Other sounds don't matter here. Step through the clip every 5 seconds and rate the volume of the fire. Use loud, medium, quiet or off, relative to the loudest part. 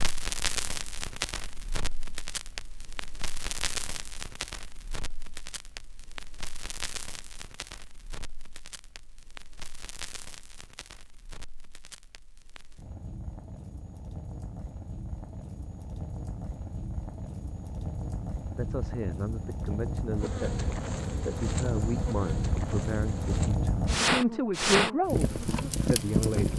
medium, quiet, quiet, medium, loud, loud.